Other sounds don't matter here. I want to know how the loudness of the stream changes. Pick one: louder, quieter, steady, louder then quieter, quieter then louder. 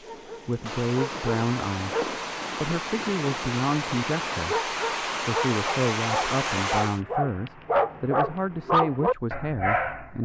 louder.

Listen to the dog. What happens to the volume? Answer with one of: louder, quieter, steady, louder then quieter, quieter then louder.
quieter then louder.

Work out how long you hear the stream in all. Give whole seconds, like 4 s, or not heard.
7 s.